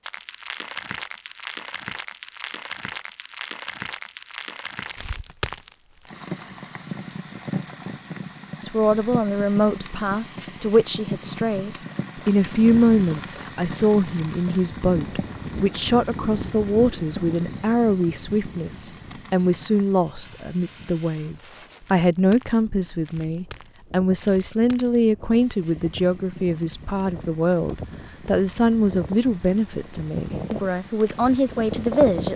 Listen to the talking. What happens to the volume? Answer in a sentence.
The loudness of the talking stays about the same.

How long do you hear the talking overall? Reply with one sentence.
You can hear the talking for 24 seconds altogether.